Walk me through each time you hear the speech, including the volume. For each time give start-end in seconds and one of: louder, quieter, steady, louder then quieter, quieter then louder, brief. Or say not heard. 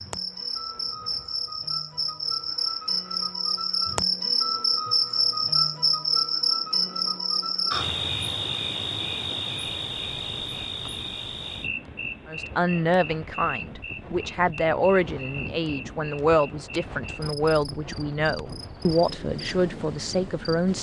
12.2-20.7 steady.